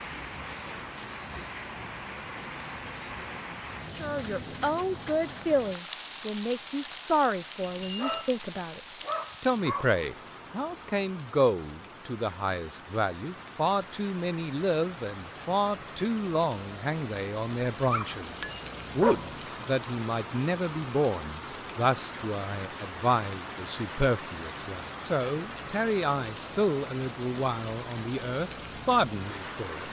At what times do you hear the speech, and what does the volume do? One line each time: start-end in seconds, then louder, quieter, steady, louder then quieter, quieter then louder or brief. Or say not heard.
3.9-29.8 steady.